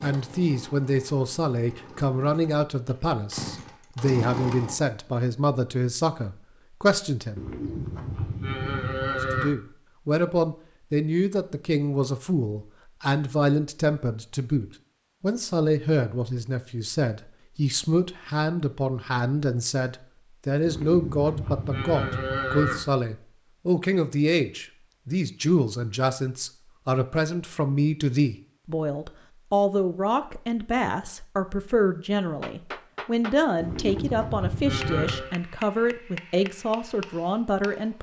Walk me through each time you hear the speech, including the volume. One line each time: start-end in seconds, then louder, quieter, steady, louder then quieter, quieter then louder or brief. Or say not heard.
0.0-7.5 steady
9.1-37.9 steady.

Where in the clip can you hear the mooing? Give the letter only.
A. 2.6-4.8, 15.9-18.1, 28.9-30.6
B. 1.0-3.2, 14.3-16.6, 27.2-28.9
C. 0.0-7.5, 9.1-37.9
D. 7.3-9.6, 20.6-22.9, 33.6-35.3
D.